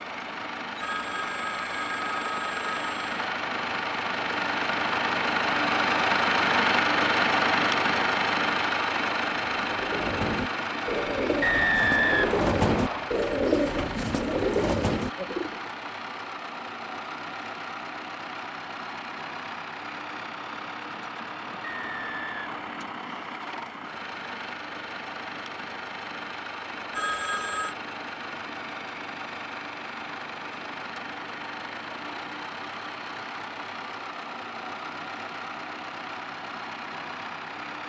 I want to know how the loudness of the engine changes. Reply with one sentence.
The volume of the engine goes down.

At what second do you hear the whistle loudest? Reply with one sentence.
The volume of the whistle peaks at 12 seconds.